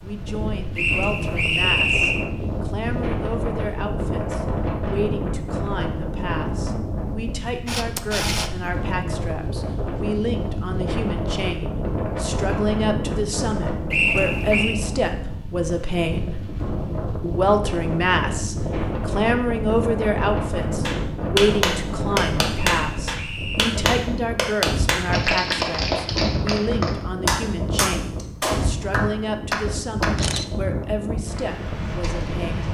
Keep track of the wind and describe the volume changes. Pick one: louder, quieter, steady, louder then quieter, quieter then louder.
steady.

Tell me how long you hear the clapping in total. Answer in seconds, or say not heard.
9 s.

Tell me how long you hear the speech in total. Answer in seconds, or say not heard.
32 s.